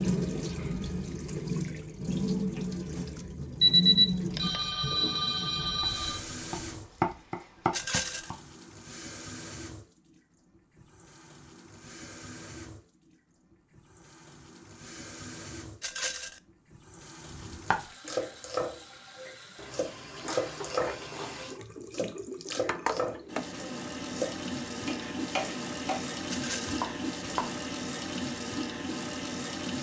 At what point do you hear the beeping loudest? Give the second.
4 s.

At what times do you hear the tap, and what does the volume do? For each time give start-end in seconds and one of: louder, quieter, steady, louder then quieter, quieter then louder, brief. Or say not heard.
0.0-29.7 quieter then louder.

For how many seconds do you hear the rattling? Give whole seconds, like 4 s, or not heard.
2 s.